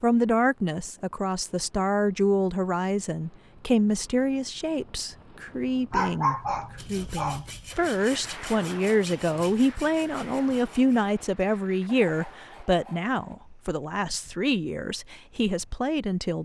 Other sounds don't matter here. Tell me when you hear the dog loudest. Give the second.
6 s.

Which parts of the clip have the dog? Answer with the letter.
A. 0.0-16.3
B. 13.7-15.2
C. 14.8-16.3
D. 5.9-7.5
D.